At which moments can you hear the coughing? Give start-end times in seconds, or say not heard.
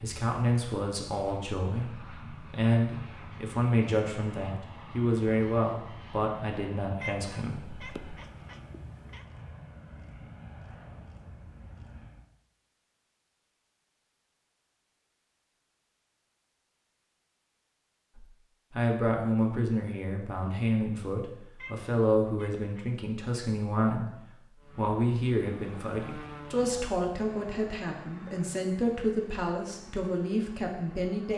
not heard.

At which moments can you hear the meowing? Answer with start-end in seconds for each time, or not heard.
7.0-9.2, 21.6-22.9.